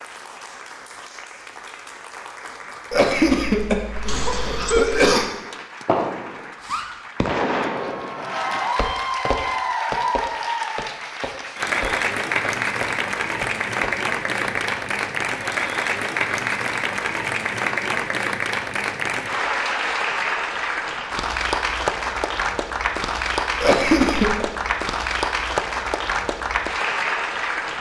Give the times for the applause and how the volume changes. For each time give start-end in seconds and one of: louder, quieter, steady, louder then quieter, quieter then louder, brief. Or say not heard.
0.0-27.7 louder.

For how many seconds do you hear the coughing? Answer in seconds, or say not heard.
3 s.